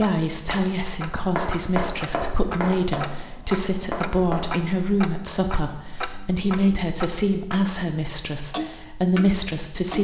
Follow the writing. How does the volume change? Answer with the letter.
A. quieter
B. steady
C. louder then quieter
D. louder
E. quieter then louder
E.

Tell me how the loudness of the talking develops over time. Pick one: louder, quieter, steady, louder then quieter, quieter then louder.
steady.